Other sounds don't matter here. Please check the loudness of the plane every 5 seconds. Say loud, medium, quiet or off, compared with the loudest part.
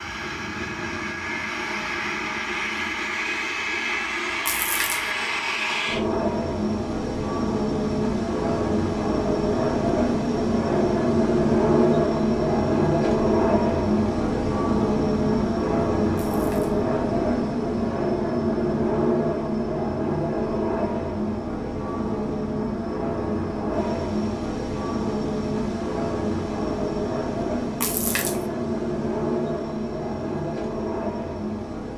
medium, loud, loud, loud, medium, medium, medium.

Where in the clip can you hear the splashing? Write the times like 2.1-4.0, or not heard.
4.5-5.1, 16.1-16.8, 27.8-28.4.